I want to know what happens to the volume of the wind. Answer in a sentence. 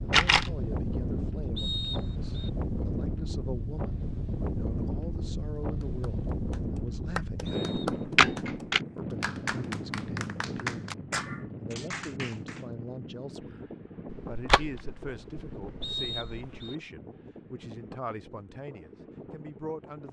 The loudness of the wind goes down.